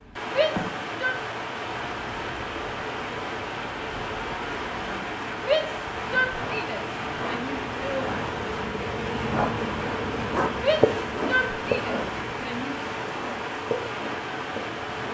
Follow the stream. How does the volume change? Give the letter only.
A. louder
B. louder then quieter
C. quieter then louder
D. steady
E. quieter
D.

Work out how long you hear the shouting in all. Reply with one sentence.
The shouting can be heard for 6 seconds in total.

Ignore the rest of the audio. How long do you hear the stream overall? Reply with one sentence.
You can hear the stream for 15 seconds altogether.